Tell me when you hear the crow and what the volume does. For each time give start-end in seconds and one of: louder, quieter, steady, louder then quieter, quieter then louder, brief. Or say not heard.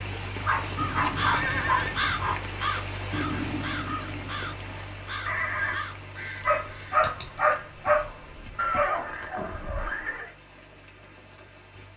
0.8-7.0 quieter.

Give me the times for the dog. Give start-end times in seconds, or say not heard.
0.5-2.4, 6.4-8.9.